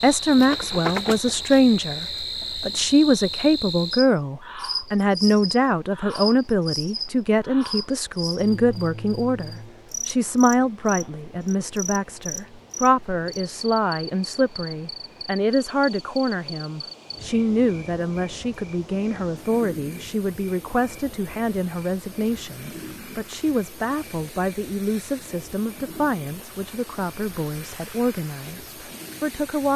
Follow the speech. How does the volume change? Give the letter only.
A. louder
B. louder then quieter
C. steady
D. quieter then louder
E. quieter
E.